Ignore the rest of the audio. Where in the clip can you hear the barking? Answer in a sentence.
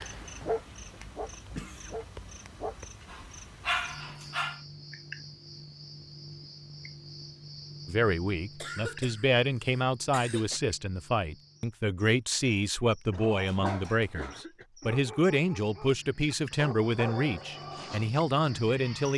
You can hear the barking from 0.0 to 4.6 s and from 13.2 to 19.1 s.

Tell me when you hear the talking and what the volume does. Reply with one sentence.
You can hear the talking from 7.8 to 19.1 s, at a steady volume.